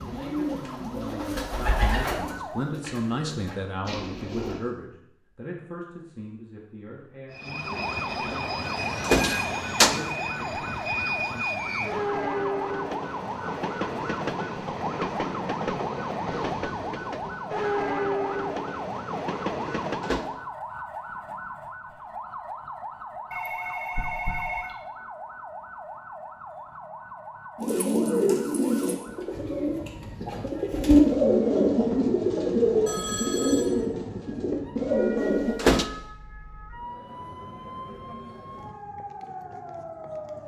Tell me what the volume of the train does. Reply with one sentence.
The volume of the train stays about the same.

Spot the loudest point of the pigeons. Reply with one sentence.
The loudest moment of the pigeons is at 31 seconds.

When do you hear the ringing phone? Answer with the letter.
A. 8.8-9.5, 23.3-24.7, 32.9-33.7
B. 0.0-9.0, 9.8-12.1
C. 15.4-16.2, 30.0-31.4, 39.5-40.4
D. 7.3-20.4
A.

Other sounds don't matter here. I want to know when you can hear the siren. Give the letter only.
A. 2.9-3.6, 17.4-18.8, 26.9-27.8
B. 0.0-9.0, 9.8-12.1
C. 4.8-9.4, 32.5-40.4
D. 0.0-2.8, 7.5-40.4
D.